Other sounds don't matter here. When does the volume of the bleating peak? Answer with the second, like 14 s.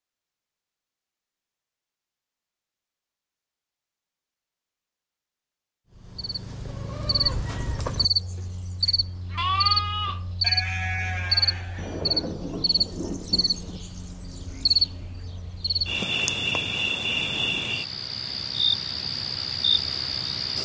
10 s.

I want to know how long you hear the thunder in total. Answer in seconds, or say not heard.
2 s.